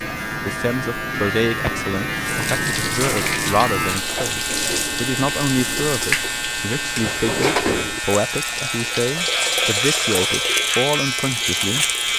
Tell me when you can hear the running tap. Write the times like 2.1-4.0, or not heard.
2.2-12.1.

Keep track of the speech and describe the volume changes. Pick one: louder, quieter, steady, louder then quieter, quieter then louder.
steady.